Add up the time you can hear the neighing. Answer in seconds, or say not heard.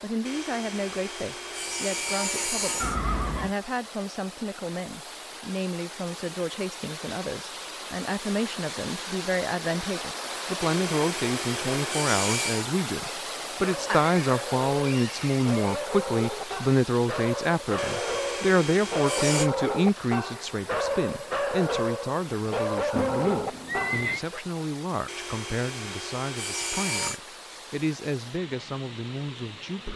4 s.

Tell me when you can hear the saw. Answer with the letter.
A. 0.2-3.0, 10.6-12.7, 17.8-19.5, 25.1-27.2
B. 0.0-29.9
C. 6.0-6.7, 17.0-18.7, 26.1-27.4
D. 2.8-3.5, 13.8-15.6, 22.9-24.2
A.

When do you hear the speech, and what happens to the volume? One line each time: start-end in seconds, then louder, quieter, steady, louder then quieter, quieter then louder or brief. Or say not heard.
0.0-29.9 louder then quieter.